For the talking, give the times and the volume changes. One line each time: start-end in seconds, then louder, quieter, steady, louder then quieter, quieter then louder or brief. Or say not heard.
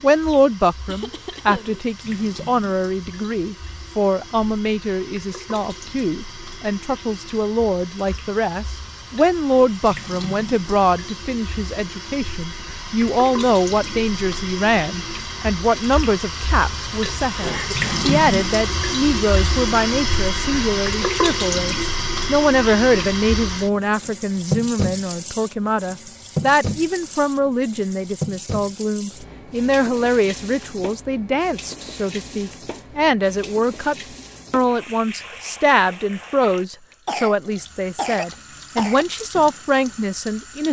0.0-40.6 steady.